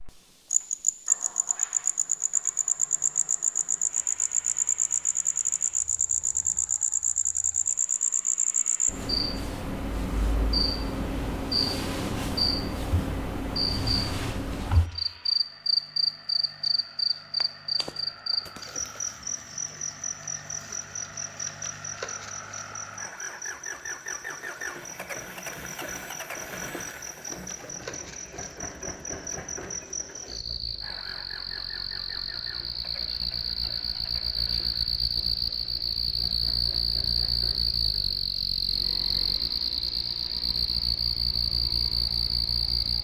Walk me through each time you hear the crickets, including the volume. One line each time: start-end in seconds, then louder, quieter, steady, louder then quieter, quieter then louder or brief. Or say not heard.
0.0-42.9 quieter then louder.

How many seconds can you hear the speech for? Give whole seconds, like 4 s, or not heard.
not heard.